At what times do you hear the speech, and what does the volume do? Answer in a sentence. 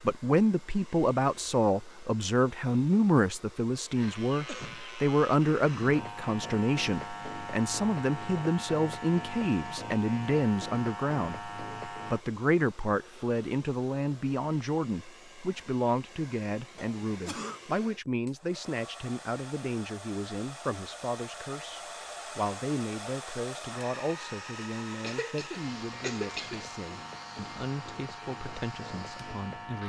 You can hear the speech from 0.0 to 29.8 s, getting quieter.